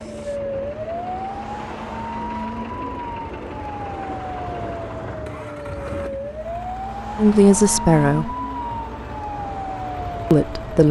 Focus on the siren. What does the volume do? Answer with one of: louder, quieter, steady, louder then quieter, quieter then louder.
steady.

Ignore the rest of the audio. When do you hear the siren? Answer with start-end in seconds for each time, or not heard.
0.0-10.8.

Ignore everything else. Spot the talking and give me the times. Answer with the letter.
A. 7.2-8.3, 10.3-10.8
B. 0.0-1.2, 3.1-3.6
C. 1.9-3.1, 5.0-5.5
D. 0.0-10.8
A.